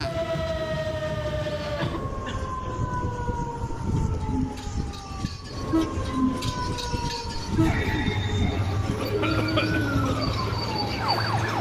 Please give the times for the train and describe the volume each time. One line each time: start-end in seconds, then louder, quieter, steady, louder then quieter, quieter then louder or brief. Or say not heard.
0.0-11.5 louder.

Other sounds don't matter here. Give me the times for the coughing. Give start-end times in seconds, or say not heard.
1.8-2.4, 9.0-9.8.